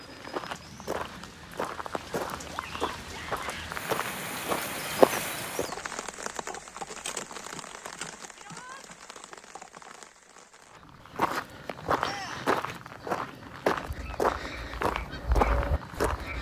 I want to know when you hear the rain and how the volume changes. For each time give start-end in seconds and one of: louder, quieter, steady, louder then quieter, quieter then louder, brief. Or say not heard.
0.0-11.1 louder then quieter.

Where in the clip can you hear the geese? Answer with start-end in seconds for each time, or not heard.
13.8-16.3.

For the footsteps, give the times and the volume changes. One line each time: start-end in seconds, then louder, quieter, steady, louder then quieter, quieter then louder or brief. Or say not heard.
0.0-6.0 louder
10.8-16.3 steady.